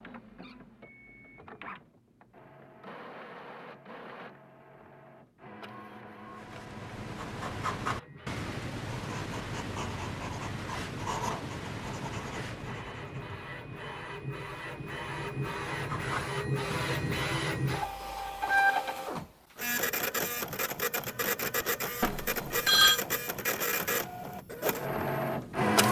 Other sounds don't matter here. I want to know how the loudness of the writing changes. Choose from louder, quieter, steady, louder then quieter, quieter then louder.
quieter then louder.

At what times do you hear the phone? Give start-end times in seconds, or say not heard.
22.0-23.0.